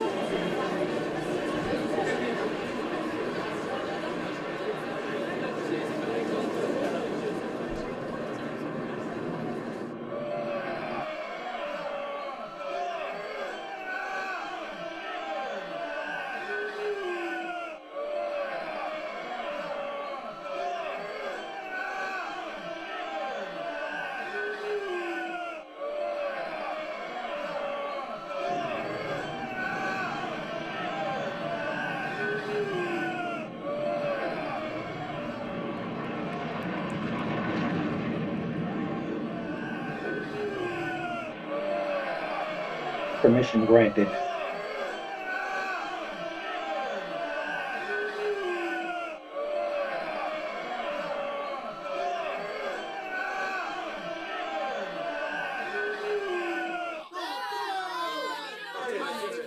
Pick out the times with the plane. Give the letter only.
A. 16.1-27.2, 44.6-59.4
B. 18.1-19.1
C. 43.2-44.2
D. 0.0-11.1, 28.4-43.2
D.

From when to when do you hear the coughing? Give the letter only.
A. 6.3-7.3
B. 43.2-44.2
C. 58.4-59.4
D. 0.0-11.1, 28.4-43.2
B.